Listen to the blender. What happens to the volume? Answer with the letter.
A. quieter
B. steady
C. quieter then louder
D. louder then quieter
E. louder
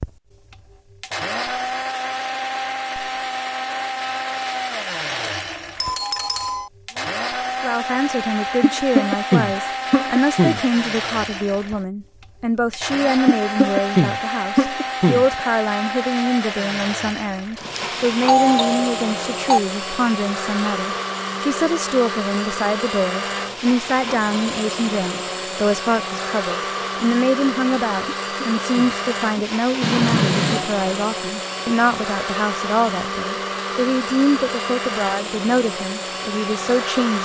B.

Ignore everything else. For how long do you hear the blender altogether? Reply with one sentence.
The blender can be heard for 37 seconds in total.